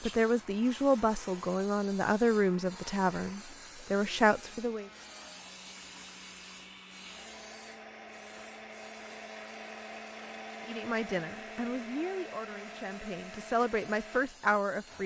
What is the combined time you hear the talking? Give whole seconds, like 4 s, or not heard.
9 s.